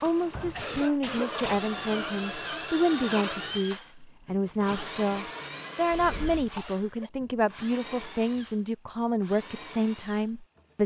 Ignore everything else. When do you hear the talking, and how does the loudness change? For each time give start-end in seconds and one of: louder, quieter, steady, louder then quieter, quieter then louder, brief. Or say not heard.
0.0-10.8 steady.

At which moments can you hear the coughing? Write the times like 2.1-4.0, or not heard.
0.3-1.7, 6.5-7.1.